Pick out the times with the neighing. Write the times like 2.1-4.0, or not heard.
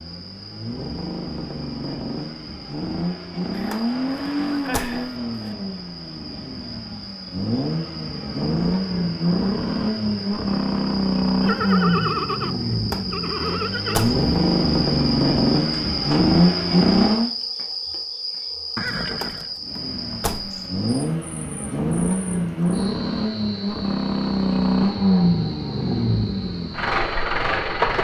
3.5-5.5, 11.4-14.2, 18.8-19.6.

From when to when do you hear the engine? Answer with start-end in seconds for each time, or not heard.
0.0-17.3, 19.6-27.9.